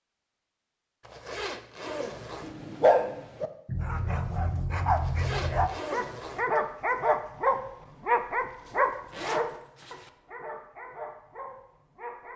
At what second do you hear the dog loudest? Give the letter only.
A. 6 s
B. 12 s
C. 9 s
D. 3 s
D.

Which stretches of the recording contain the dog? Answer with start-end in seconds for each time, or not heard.
1.9-12.3.